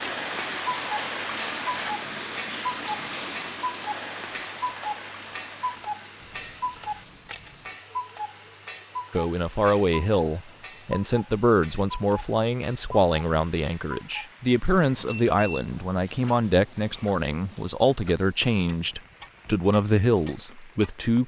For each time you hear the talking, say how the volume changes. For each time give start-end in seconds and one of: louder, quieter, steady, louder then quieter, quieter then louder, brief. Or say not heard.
9.1-21.2 steady.